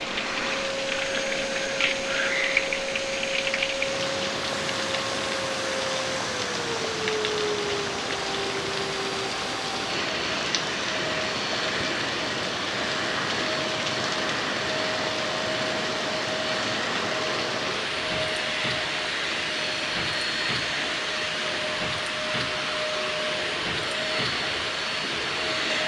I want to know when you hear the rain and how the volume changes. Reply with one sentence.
You can hear the rain from 0.0 to 25.8 s, at a steady volume.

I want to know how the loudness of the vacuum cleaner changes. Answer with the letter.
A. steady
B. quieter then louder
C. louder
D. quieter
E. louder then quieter
A.